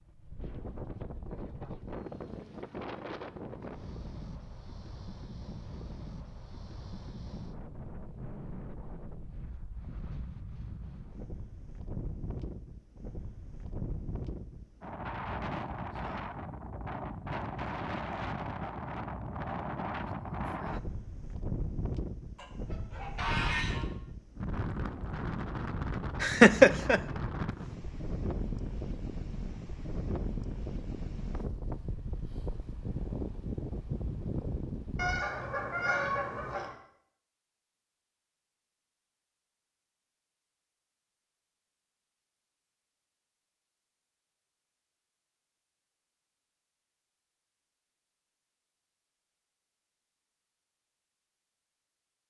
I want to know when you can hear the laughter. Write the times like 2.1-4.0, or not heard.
26.2-27.0.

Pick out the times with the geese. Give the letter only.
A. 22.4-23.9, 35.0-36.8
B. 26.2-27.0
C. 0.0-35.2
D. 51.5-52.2
A.